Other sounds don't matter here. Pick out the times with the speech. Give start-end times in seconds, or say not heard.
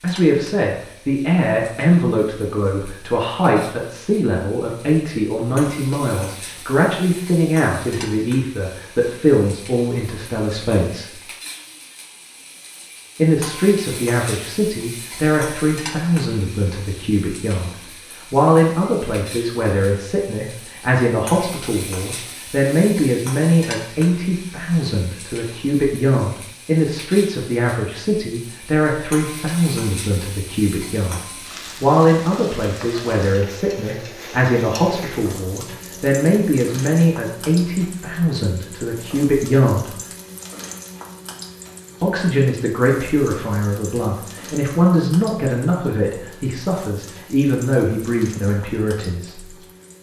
0.0-11.2, 13.2-17.7, 18.3-31.2, 31.8-40.0, 42.0-49.5.